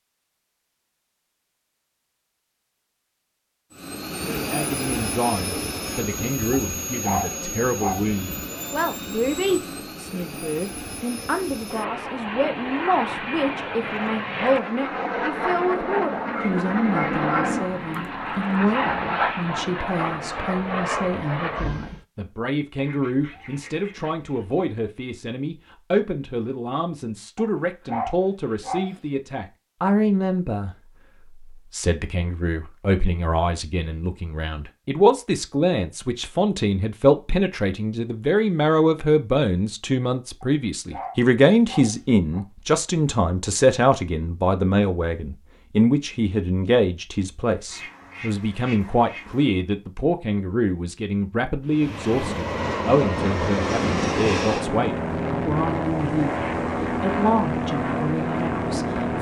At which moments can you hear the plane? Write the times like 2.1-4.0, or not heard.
3.7-22.0, 51.6-59.1.